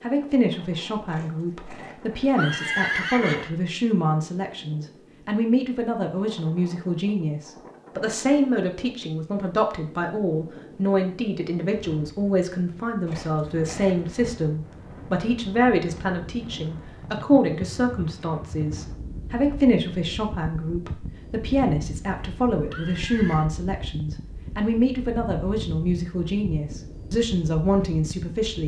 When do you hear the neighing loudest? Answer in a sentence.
The volume of the neighing peaks at 3 seconds.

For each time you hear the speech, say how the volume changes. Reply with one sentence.
The speech can be heard from 0.0 to 28.6 s, at a steady volume.